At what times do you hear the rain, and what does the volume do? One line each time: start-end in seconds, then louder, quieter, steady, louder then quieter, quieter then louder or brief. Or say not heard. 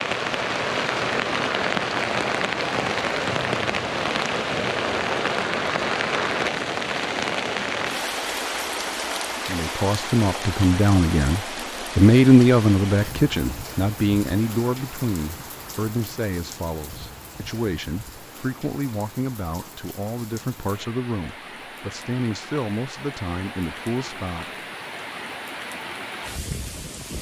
0.0-27.1 quieter then louder.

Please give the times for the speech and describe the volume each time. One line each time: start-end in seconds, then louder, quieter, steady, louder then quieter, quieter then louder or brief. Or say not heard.
9.4-24.4 quieter.